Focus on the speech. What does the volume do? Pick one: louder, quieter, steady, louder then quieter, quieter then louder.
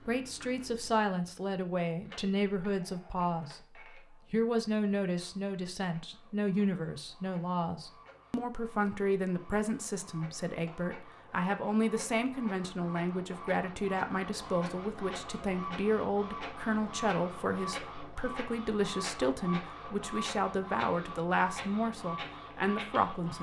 steady.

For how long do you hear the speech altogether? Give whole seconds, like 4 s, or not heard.
23 s.